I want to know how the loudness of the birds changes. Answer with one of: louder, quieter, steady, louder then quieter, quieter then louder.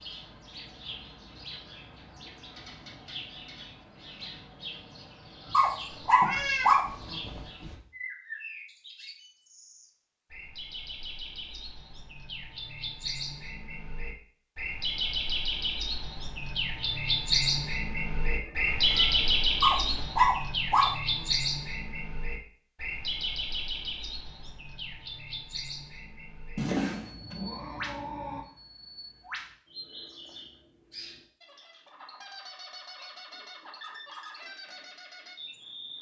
louder then quieter.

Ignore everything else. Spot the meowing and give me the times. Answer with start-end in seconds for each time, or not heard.
6.0-7.8, 18.2-20.0, 26.6-28.4.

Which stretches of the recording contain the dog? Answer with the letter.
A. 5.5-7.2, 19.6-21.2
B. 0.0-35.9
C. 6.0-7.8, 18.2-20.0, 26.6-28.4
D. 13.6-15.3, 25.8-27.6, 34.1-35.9
A.